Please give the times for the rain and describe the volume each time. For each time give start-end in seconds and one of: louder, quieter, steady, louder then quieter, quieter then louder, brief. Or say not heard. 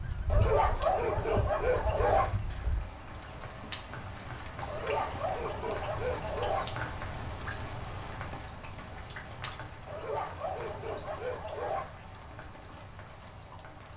0.0-13.9 louder then quieter.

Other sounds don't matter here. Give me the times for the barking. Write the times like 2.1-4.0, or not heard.
0.3-2.3, 4.7-6.7, 9.8-11.8.